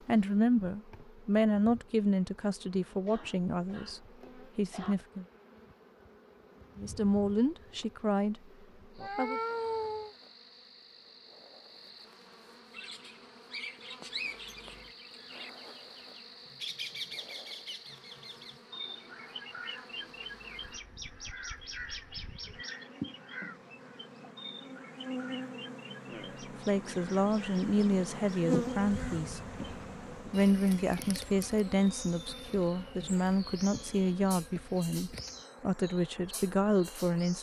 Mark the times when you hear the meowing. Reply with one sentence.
You can hear the meowing from 9.0 to 10.2 s.